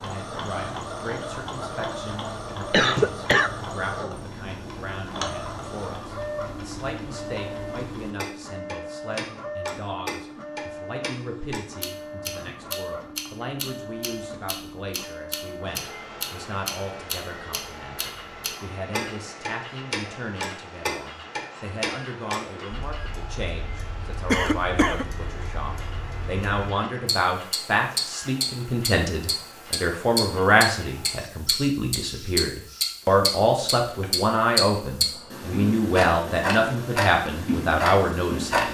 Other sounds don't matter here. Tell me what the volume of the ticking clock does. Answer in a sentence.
The loudness of the ticking clock goes up.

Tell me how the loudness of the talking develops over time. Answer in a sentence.
The volume of the talking goes up.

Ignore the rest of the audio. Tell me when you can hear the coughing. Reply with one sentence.
The coughing can be heard from 2.7 to 3.5 s and from 24.3 to 25.1 s.